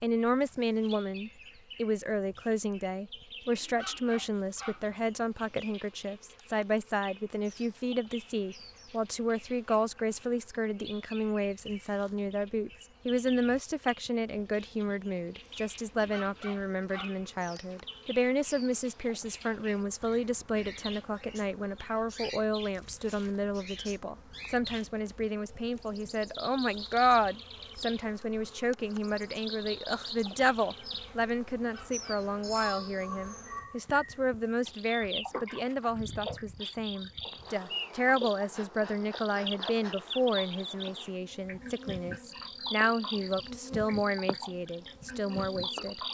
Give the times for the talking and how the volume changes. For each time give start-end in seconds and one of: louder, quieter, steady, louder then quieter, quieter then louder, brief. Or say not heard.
0.0-46.0 steady.